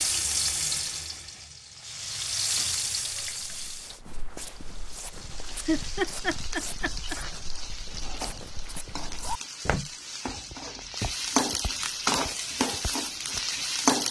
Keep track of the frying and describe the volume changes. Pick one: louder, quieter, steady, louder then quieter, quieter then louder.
quieter then louder.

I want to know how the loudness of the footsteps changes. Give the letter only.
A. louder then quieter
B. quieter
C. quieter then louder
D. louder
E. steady
A.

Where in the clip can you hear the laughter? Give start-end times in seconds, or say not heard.
5.7-7.2.